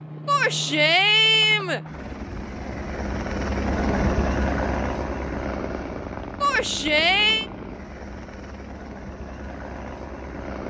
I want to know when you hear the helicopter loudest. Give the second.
4 s.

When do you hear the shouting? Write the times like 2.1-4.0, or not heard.
0.2-1.8, 6.4-7.5.